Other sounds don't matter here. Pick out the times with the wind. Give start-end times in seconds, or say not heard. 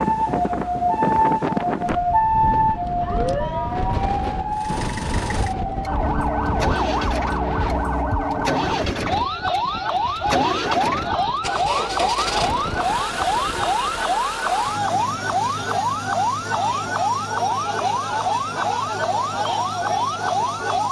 0.0-14.0.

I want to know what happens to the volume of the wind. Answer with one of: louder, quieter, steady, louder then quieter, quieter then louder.
quieter.